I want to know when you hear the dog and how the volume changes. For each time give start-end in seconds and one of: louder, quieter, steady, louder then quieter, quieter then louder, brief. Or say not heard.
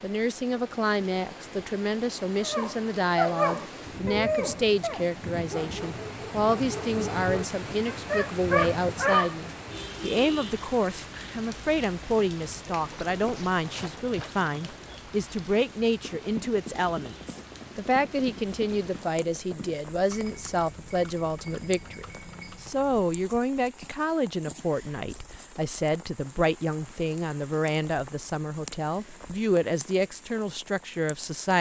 2.4-9.3 quieter then louder.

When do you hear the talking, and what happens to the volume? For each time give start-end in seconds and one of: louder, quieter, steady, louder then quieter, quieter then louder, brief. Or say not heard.
0.0-31.5 steady.